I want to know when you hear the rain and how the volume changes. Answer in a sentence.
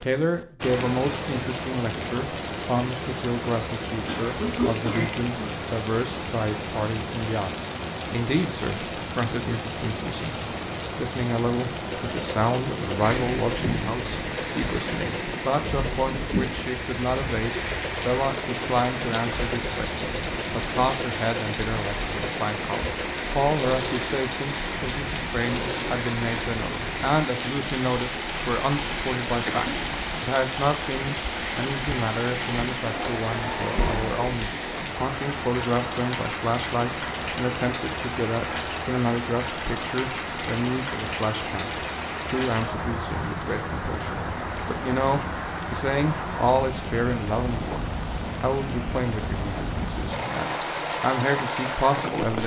The rain can be heard from 0.0 to 52.4 s, at a steady volume.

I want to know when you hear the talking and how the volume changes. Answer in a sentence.
The talking can be heard from 0.0 to 47.8 s, at a steady volume; and from 48.4 to 52.4 s, getting quieter then louder.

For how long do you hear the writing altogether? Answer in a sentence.
The writing can't be heard in this clip.